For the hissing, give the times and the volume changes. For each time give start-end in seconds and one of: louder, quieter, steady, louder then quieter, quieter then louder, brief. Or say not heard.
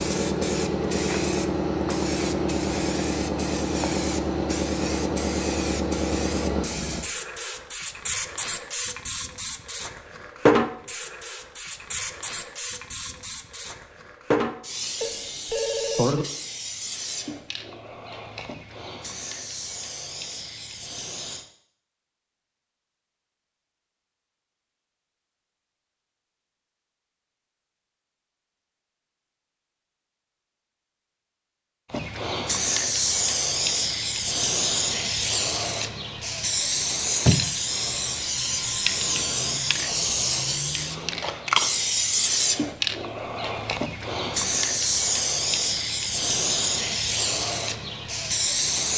0.0-21.4 quieter
31.9-48.9 steady.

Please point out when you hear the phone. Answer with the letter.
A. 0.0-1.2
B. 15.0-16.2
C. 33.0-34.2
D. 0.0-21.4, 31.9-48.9
B.